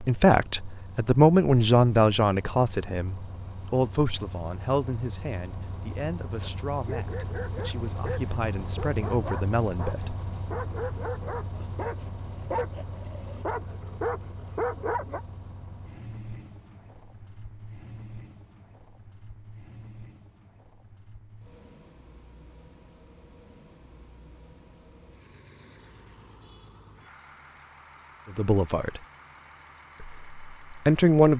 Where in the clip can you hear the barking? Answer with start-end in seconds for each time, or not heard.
6.4-15.2.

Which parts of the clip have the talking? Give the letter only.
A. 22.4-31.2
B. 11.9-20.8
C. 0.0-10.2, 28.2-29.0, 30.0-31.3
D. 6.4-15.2
C.